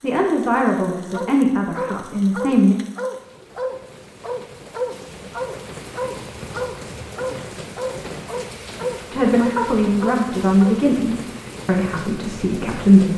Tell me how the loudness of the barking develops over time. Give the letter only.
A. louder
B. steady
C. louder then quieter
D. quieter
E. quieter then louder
B.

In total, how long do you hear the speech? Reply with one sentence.
The speech can be heard for 7 seconds in total.